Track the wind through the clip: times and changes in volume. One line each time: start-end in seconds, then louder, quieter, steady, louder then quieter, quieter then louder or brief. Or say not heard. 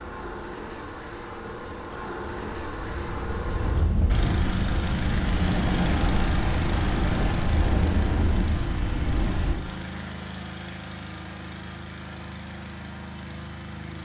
0.0-9.6 louder.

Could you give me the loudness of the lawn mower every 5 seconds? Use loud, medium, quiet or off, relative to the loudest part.
loud, loud, medium.